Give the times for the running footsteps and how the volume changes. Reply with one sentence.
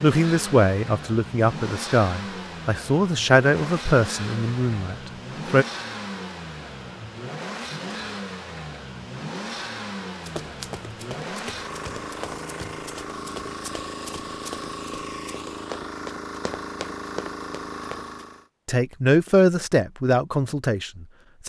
You can hear the running footsteps from 10.2 to 18.1 s, at a steady volume.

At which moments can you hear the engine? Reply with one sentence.
You can hear the engine from 0.0 to 18.4 s.